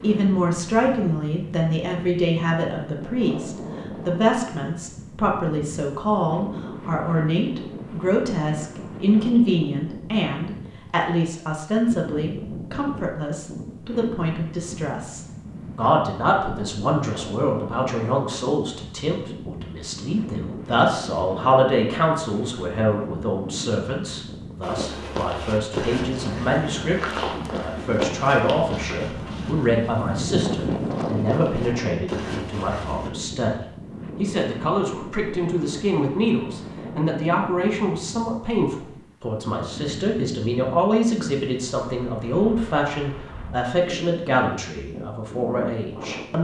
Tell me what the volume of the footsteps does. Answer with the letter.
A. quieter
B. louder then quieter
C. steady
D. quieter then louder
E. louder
D.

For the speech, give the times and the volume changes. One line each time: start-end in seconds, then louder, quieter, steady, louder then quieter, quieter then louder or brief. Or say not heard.
0.0-46.4 steady.